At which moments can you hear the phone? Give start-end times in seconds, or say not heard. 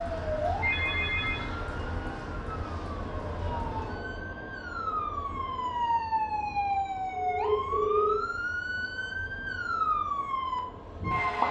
0.6-1.4, 7.2-8.2.